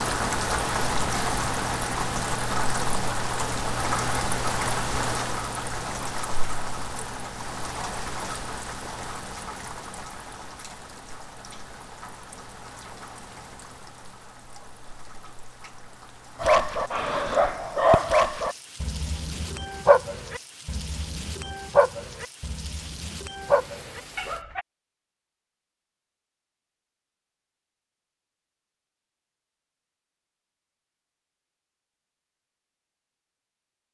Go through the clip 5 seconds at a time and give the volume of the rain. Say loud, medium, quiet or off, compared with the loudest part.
loud, medium, quiet, quiet, quiet, off, off.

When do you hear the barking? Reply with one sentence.
You can hear the barking from 16.4 to 24.6 s.